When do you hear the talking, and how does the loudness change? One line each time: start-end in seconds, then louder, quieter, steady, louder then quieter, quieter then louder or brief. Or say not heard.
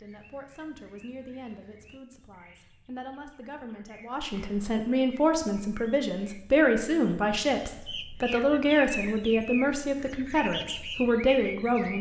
0.0-11.9 louder.